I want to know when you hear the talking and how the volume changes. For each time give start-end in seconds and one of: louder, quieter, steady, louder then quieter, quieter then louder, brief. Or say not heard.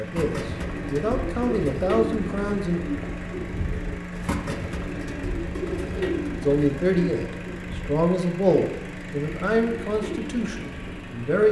0.0-2.8 brief
6.4-11.4 quieter.